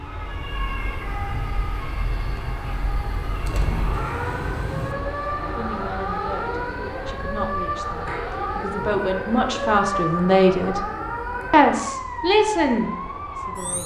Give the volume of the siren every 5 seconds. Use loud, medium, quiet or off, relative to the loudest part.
medium, loud, loud.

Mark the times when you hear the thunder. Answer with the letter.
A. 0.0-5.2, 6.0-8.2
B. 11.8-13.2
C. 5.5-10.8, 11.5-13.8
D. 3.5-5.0
D.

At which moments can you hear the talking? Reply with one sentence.
The talking can be heard from 5.5 to 10.8 s and from 11.5 to 13.8 s.